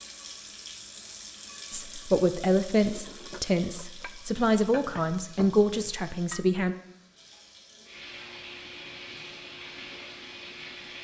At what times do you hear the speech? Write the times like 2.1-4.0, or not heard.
1.7-6.8.